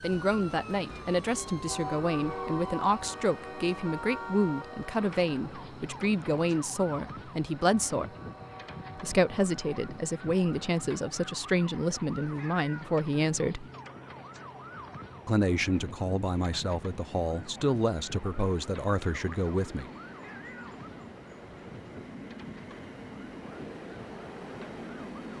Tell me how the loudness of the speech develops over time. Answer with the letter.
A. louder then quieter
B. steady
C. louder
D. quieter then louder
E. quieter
B.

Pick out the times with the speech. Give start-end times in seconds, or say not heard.
0.0-8.1, 8.9-13.7, 15.2-19.9.